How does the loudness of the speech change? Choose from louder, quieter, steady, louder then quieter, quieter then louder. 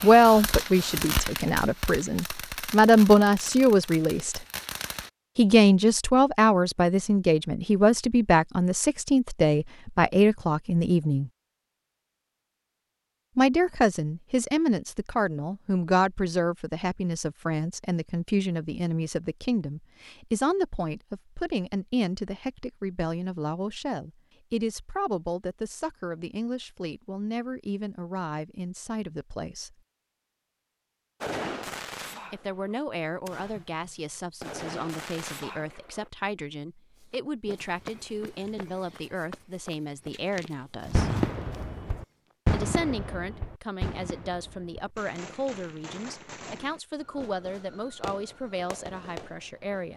quieter.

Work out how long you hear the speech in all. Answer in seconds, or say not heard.
43 s.